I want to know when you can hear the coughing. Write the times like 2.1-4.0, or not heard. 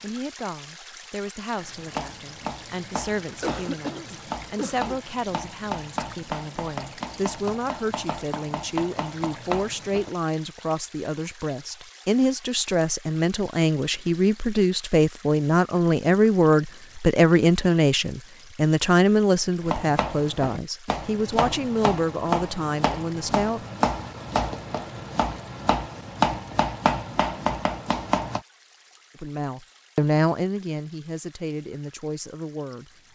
3.2-5.0.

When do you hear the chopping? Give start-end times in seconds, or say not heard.
1.6-10.1, 19.6-28.4.